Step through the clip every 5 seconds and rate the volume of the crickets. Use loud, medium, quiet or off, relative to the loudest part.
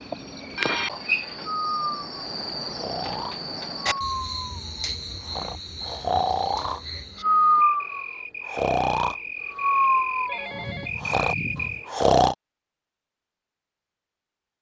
loud, medium, loud.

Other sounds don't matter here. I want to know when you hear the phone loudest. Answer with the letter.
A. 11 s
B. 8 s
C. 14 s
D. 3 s
A.